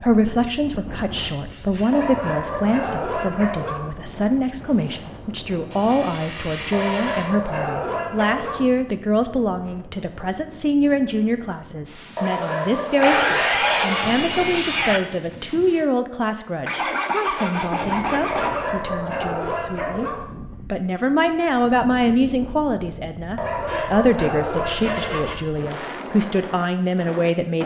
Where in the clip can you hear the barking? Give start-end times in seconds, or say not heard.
1.9-3.9, 6.7-8.7, 12.2-14.1, 18.3-20.2, 23.4-25.3.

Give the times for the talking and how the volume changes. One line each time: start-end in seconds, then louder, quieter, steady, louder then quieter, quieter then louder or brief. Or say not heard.
0.0-27.6 steady.